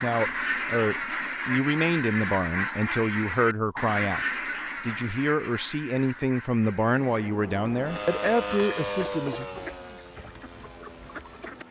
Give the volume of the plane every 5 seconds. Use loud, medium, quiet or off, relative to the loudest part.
off, loud, quiet.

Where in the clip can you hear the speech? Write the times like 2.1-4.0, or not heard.
0.0-4.2, 4.8-9.4.